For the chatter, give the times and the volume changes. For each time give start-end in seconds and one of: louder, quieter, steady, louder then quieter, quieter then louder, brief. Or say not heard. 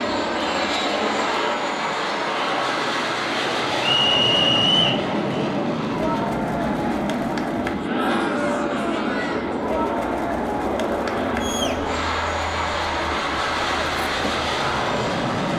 0.0-15.5 steady.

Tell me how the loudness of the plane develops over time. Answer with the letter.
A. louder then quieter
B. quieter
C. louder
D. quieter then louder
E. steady
E.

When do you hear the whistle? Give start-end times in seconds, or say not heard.
3.9-5.0.